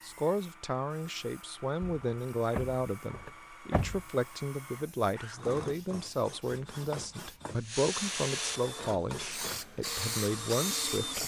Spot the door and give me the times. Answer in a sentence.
The door can be heard from 1.8 to 4.0 s.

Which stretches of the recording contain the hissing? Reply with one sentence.
You can hear the hissing from 0.0 to 11.2 s.